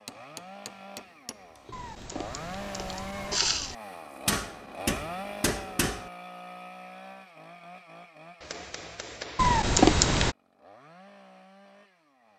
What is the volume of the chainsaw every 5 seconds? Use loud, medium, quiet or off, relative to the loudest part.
loud, loud, quiet.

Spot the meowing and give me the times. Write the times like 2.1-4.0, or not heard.
1.7-3.8, 9.3-10.3.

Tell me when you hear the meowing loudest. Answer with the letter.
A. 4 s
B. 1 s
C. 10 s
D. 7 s
C.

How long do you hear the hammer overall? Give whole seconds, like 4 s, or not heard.
5 s.